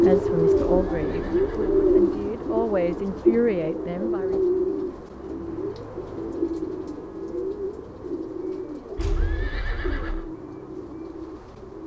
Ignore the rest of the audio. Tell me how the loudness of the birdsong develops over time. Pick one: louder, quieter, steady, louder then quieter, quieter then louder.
quieter.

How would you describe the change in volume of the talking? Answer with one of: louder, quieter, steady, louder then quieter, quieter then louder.
quieter then louder.